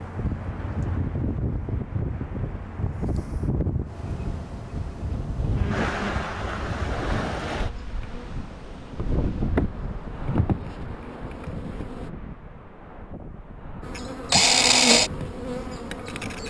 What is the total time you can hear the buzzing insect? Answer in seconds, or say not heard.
9 s.